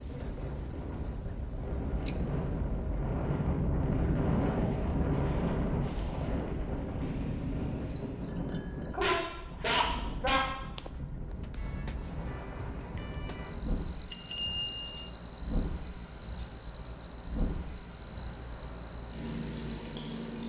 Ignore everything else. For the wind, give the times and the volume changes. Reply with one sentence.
The wind can be heard from 0.0 to 20.4 s, getting quieter.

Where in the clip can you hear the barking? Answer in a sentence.
You can hear the barking from 8.9 to 10.4 s.